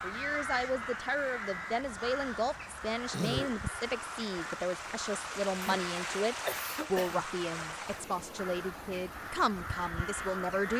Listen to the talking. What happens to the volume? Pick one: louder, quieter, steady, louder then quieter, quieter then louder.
steady.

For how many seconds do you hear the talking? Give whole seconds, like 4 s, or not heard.
11 s.